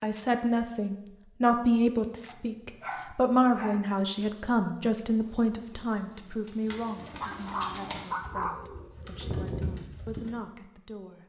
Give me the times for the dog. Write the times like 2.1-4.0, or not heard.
2.2-3.9, 7.2-8.7.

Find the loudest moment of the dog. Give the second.
8 s.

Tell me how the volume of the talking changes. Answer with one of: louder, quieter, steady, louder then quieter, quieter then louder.
quieter.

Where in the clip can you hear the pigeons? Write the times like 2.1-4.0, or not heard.
5.2-10.3.